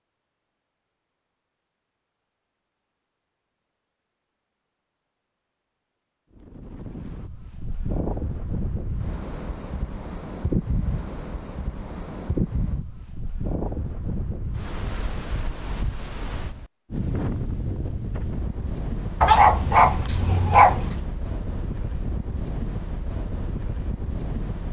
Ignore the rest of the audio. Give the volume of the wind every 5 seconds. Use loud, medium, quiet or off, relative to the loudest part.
off, loud, loud, loud, loud.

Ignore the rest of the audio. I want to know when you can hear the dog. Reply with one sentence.
You can hear the dog from 19.2 to 21.1 s.